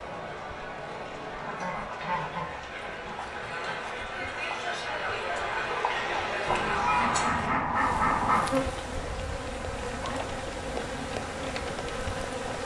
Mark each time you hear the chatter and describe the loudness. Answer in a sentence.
The chatter can be heard from 0.0 to 7.5 s, getting louder.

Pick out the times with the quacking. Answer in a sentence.
You can hear the quacking from 1.4 to 3.8 s and from 6.5 to 8.5 s.